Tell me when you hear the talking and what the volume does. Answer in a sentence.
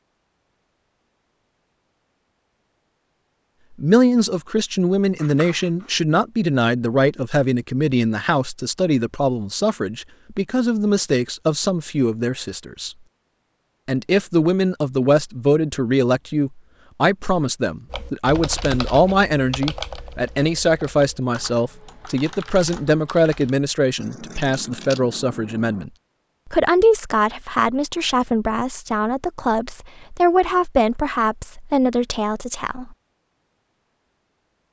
You can hear the talking from 3.8 to 12.9 s, at a steady volume; and from 13.8 to 33.0 s, at a steady volume.